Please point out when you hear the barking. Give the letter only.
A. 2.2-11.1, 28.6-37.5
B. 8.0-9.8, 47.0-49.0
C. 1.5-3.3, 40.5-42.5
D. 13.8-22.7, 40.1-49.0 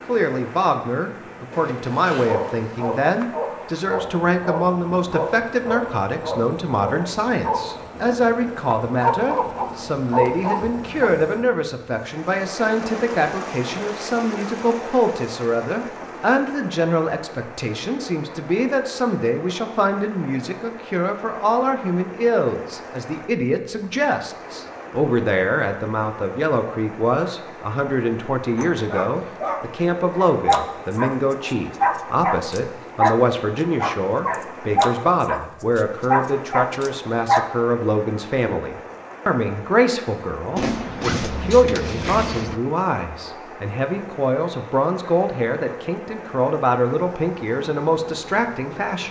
A.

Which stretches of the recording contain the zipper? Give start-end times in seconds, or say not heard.
1.5-3.3, 40.5-42.5.